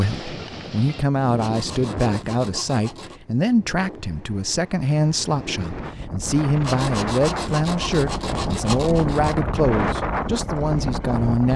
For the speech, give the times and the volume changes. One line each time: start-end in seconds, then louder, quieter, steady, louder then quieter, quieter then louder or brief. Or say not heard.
0.0-11.5 steady.